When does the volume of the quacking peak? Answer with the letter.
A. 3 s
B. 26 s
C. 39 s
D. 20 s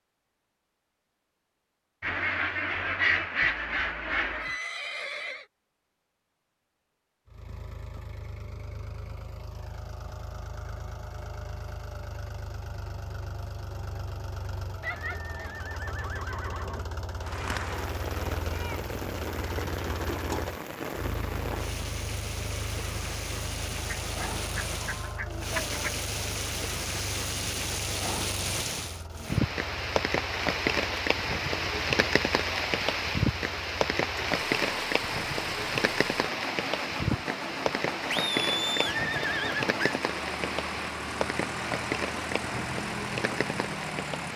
A.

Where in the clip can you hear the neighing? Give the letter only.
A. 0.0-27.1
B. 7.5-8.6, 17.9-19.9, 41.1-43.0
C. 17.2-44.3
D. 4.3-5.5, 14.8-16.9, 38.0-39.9
D.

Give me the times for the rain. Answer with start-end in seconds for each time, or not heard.
17.2-44.3.